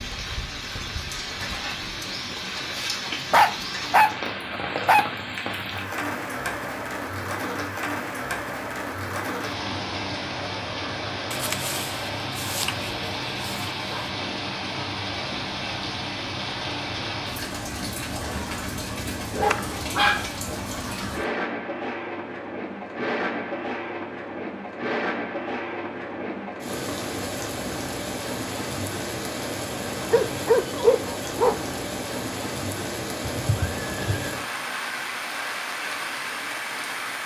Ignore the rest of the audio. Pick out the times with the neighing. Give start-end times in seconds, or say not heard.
33.2-34.4.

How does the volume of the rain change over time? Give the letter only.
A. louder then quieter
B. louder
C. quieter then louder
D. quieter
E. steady
E.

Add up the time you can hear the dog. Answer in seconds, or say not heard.
7 s.